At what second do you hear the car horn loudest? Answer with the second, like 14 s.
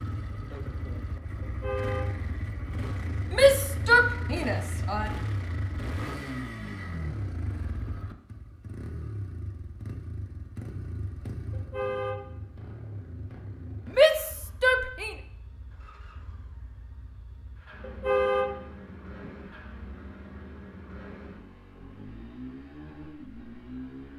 18 s.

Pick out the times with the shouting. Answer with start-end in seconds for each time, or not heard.
3.3-5.1, 13.8-15.2.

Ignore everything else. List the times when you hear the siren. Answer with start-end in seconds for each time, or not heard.
not heard.